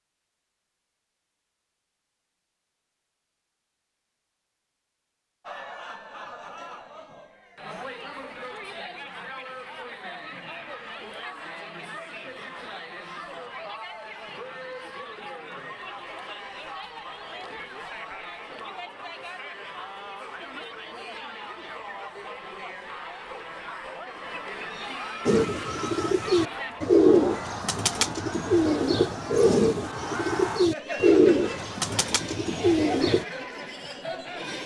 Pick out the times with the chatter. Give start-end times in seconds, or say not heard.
5.4-34.6.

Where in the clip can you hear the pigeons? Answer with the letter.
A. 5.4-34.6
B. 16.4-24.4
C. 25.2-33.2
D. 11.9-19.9
C.